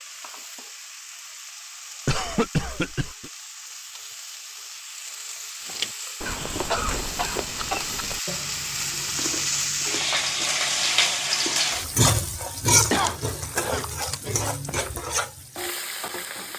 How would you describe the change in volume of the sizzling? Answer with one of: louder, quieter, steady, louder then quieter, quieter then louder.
louder then quieter.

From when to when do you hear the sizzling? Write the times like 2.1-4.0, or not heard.
0.0-16.5.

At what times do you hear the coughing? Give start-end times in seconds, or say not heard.
2.0-3.3, 6.2-7.8, 12.9-13.8.